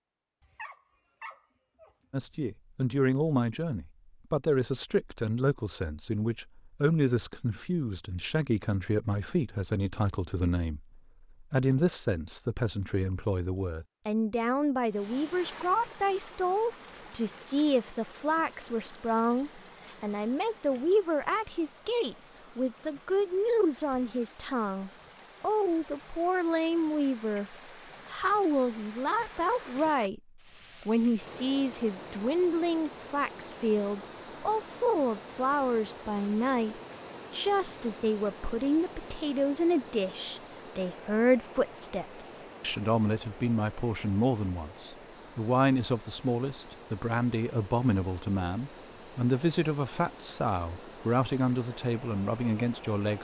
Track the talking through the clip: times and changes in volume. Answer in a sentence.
You can hear the talking from 2.1 to 53.1 s, at a steady volume.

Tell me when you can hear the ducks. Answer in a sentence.
The ducks can't be heard in this clip.